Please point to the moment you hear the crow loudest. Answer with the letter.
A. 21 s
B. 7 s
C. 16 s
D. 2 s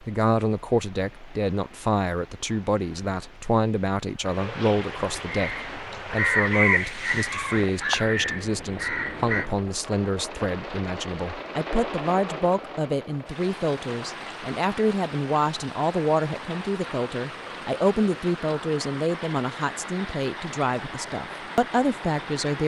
B.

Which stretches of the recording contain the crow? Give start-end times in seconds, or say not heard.
5.2-9.4.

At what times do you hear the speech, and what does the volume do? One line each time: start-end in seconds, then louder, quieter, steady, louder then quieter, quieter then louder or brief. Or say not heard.
0.0-22.6 steady.